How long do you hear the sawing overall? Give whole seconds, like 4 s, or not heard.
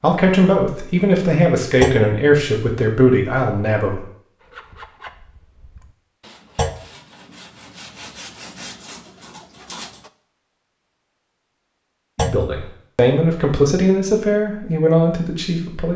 6 s.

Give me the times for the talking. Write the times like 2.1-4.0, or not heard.
0.0-4.0, 12.2-15.9.